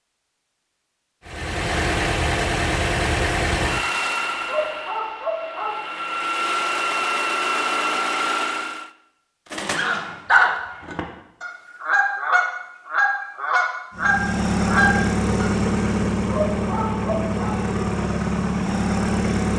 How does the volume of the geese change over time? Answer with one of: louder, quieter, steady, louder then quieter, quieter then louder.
quieter then louder.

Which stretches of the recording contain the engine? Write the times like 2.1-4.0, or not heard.
1.2-8.9, 13.9-19.5.